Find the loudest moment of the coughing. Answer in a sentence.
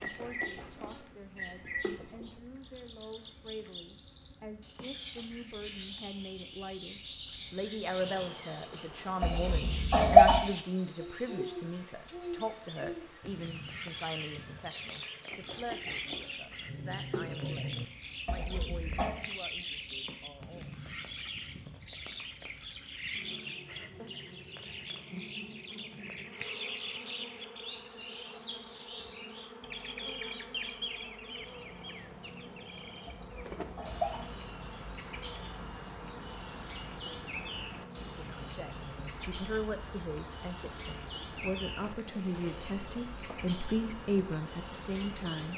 The volume of the coughing peaks at 10 seconds.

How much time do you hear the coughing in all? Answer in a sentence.
The coughing can be heard for 3 seconds in total.